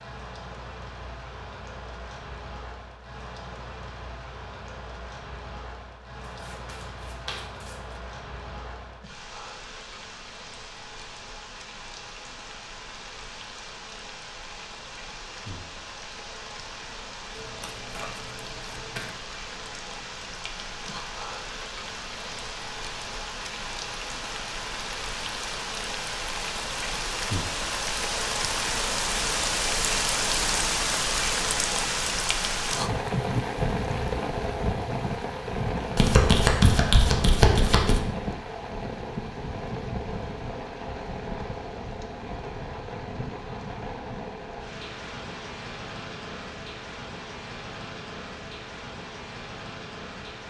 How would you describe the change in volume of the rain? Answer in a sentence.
The loudness of the rain goes up, then down.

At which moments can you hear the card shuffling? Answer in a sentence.
You can hear the card shuffling from 6.4 to 7.8 s, from 17.4 to 19.1 s and from 36.0 to 38.0 s.